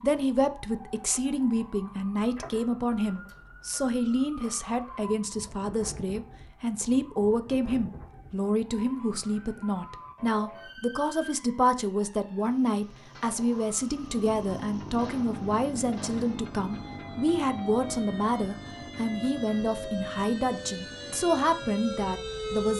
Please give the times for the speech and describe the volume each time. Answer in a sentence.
The speech can be heard from 0.0 to 22.7 s, at a steady volume.